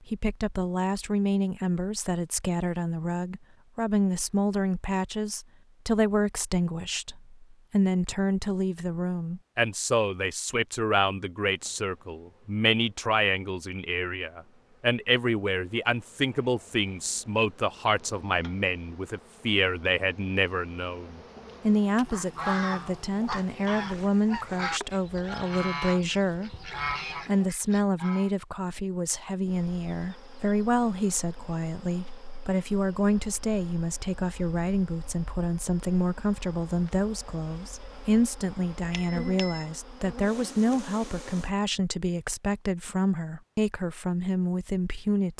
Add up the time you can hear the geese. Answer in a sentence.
You can hear the geese for 6 seconds altogether.